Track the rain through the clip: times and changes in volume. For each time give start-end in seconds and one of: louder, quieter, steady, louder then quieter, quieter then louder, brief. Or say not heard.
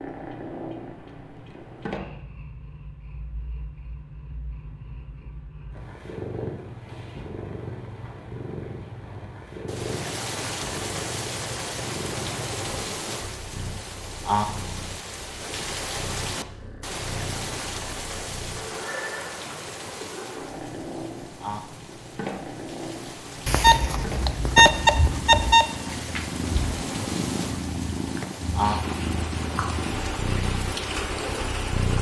9.7-31.9 quieter then louder.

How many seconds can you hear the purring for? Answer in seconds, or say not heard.
32 s.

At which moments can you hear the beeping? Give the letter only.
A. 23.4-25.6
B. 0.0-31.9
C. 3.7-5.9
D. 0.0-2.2
A.